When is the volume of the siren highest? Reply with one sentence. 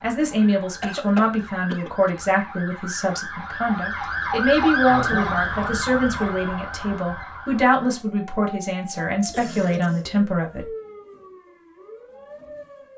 The volume of the siren peaks at 5 seconds.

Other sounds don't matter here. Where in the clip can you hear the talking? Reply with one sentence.
The talking can be heard from 0.0 to 10.7 s.